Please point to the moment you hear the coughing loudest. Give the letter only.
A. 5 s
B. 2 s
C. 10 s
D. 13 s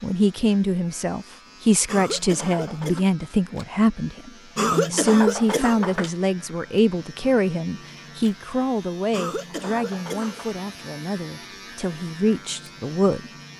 A.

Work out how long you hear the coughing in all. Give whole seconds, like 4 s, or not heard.
4 s.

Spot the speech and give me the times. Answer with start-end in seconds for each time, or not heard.
0.0-13.5.